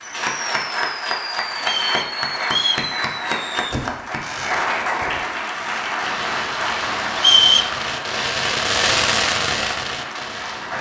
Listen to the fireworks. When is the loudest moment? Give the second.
9 s.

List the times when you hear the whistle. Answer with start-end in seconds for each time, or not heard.
1.6-2.9, 7.2-7.7.